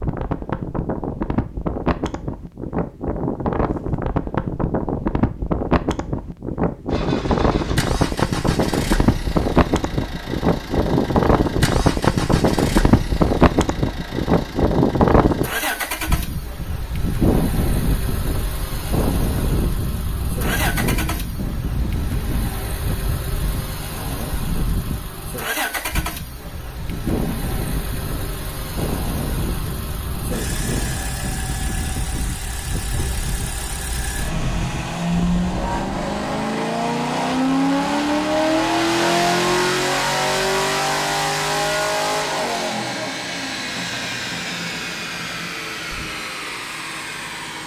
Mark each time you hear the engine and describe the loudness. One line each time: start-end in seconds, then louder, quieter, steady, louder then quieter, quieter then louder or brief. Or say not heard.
6.8-47.6 louder.